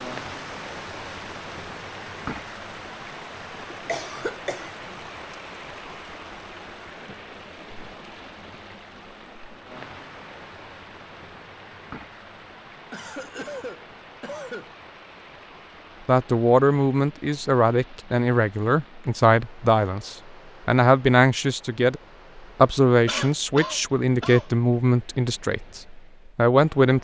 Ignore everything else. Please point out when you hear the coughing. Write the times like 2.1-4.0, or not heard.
3.9-5.3, 12.9-14.8, 23.1-24.4.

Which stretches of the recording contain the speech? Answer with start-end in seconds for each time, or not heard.
16.1-26.9.